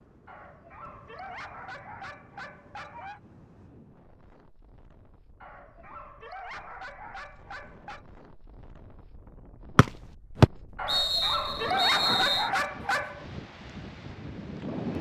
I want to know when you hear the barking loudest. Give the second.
12 s.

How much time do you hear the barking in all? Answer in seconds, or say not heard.
8 s.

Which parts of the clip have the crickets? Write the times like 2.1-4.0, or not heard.
not heard.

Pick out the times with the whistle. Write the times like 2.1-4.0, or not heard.
9.8-12.5.